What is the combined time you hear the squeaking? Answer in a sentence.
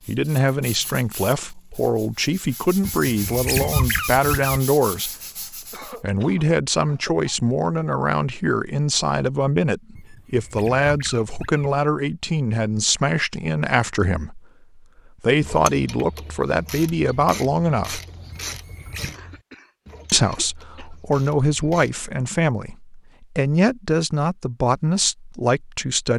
The squeaking can be heard for 4 seconds in total.